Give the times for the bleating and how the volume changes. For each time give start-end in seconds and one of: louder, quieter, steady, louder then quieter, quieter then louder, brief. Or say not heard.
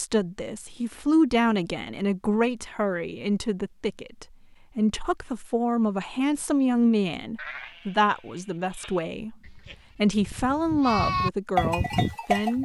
7.3-12.6 louder.